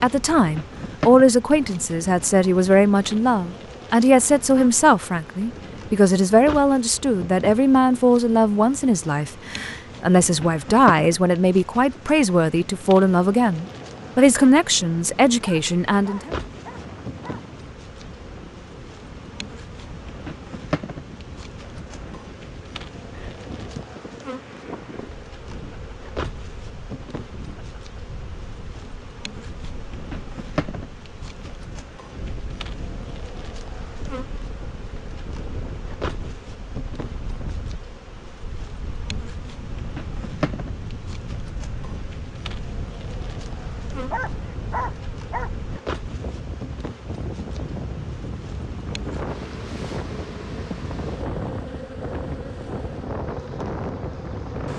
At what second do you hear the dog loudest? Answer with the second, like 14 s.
45 s.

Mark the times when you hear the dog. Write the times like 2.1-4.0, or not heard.
15.4-17.4, 44.1-45.5.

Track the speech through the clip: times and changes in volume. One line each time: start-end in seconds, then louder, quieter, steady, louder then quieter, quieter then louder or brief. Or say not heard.
0.0-16.3 steady.